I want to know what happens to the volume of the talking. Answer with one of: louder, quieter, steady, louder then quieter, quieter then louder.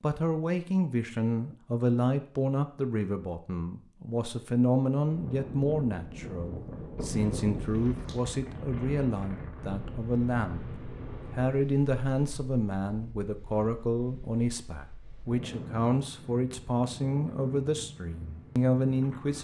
steady.